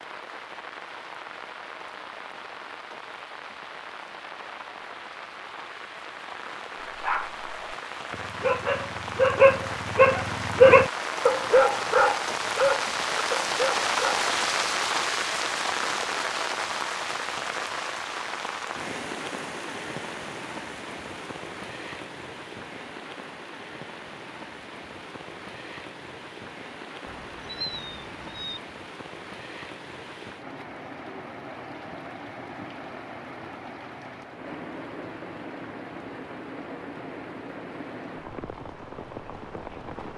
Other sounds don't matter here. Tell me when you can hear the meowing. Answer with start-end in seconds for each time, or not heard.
27.1-28.6.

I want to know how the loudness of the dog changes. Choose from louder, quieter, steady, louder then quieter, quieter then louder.
louder then quieter.